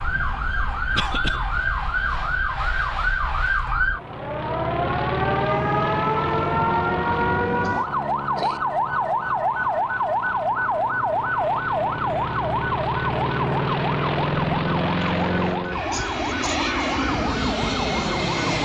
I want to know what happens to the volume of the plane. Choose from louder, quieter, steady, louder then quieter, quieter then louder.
quieter then louder.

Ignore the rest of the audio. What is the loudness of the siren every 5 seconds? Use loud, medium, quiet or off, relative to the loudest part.
loud, loud, loud, medium.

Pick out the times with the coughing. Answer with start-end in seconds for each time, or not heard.
0.9-1.4, 7.6-8.6, 15.0-16.7.